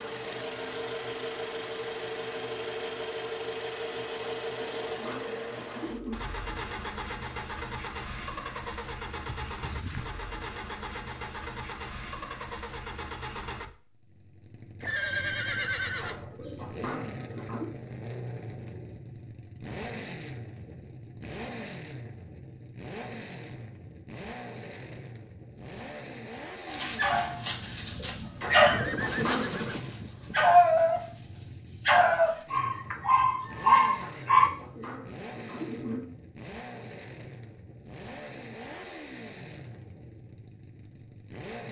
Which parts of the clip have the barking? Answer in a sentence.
The barking can be heard from 26.6 to 34.5 s.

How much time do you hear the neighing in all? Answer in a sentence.
You can hear the neighing for 4 seconds altogether.